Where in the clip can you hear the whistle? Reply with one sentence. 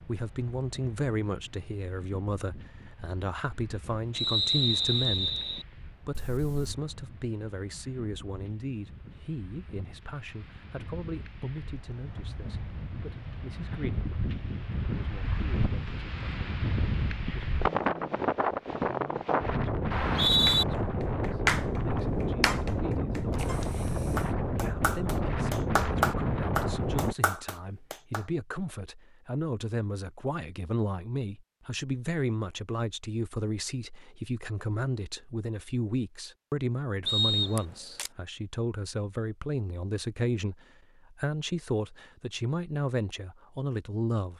The whistle can be heard from 4.2 to 5.7 s, from 19.9 to 20.6 s and from 37.0 to 37.7 s.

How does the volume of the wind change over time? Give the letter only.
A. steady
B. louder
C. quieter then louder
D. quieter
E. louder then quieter
B.